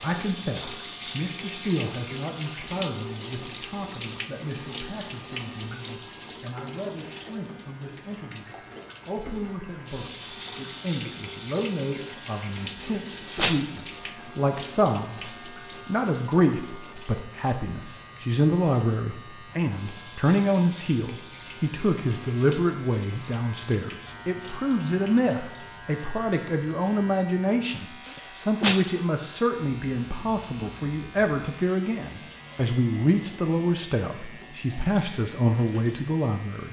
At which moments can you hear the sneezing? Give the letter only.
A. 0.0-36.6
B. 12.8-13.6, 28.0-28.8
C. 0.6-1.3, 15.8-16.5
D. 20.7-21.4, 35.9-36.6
B.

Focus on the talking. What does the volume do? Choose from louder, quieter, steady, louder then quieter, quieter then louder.
louder.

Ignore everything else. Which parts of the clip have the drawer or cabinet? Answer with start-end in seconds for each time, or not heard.
not heard.